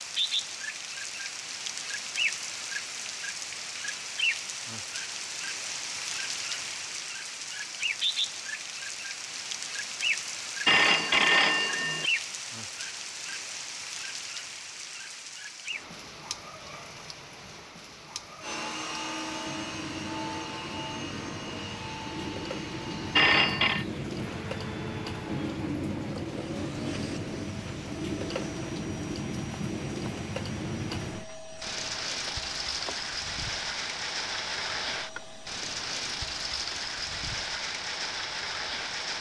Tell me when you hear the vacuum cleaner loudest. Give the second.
19 s.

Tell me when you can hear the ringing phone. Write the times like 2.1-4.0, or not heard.
10.7-12.1, 23.1-23.9.